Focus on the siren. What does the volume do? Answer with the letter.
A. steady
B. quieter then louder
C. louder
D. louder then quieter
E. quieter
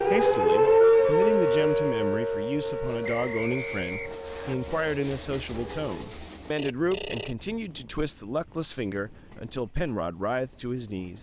E.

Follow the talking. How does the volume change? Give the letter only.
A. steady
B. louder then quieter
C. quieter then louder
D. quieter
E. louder
A.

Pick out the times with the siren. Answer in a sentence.
You can hear the siren from 0.0 to 6.2 s.